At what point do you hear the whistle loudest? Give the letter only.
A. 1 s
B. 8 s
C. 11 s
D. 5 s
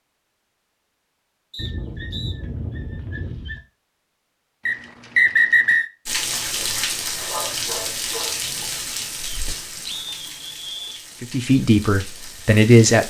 D.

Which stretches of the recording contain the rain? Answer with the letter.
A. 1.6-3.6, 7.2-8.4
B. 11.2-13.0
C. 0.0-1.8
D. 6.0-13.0
D.